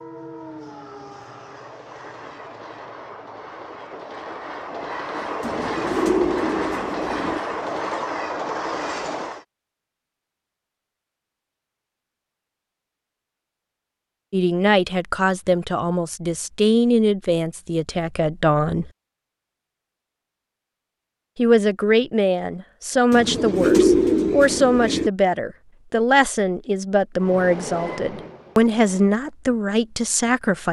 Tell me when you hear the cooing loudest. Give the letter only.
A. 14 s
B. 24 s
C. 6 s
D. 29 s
B.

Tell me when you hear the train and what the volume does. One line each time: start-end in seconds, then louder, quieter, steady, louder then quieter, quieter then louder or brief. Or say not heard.
0.0-9.4 louder
27.1-29.1 brief.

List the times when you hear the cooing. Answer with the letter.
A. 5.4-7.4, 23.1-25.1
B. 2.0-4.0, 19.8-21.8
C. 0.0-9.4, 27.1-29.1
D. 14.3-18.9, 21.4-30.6
A.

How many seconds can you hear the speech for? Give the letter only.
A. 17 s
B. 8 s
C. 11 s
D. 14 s
D.